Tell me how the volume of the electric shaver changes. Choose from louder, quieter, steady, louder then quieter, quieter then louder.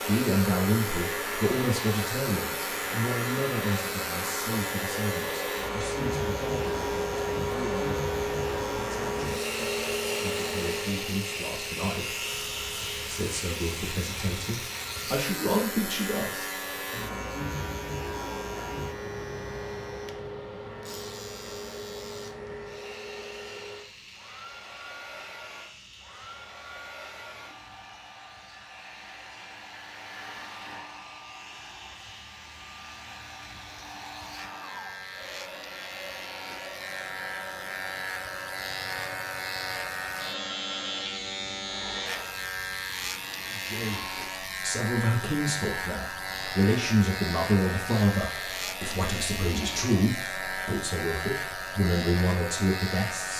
quieter then louder.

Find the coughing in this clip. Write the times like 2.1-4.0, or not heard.
not heard.